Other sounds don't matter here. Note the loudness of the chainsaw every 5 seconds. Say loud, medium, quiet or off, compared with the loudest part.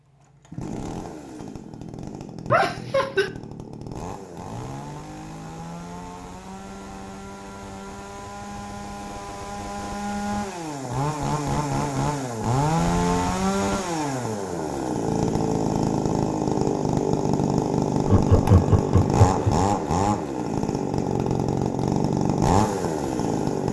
quiet, quiet, loud, loud, loud.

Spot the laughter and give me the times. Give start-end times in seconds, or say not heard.
2.5-3.3, 18.1-19.6.